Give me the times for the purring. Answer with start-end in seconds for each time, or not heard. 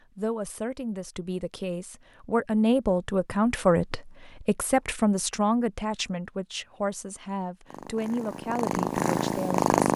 7.7-9.9.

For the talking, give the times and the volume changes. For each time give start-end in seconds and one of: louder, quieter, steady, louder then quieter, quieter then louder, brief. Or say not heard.
0.1-9.7 louder then quieter.